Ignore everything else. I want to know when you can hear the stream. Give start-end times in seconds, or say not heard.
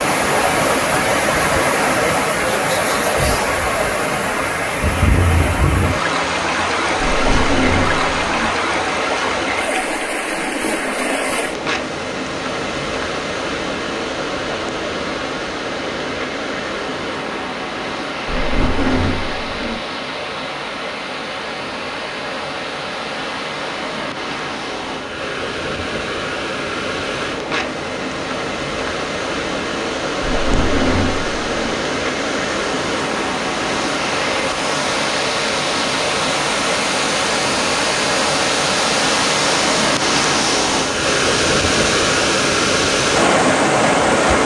0.0-44.4.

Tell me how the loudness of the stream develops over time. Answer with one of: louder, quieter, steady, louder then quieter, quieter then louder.
quieter then louder.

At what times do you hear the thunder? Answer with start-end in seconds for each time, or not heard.
7.0-8.5, 18.2-19.8, 30.2-31.8.